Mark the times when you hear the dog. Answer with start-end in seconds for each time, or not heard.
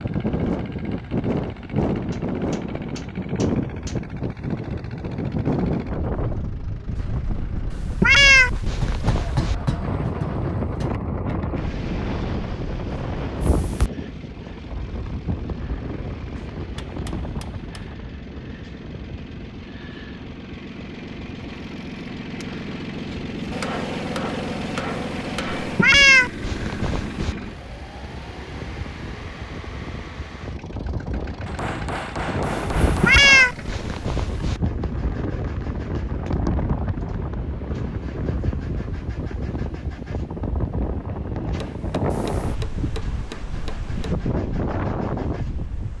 not heard.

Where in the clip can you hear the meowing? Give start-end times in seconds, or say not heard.
7.7-9.6, 25.6-27.4, 32.9-34.6.